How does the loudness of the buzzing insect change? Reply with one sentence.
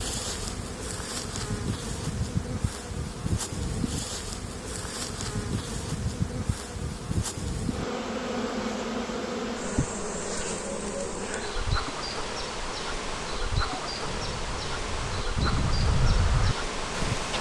The loudness of the buzzing insect stays about the same.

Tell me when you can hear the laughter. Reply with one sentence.
The laughter can't be heard in this clip.